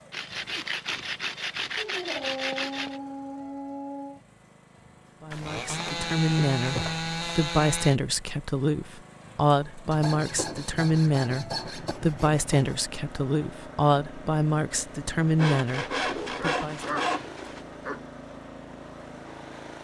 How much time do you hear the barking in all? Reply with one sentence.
The barking can be heard for 4 seconds in total.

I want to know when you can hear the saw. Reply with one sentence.
The saw can be heard from 0.1 to 3.0 s, from 5.3 to 8.0 s, from 9.9 to 12.8 s and from 15.3 to 17.6 s.